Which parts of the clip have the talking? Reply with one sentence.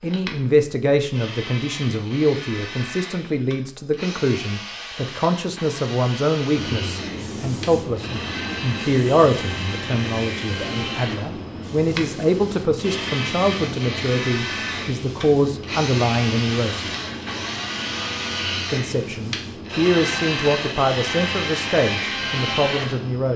The talking can be heard from 0.0 to 16.9 s and from 18.6 to 23.3 s.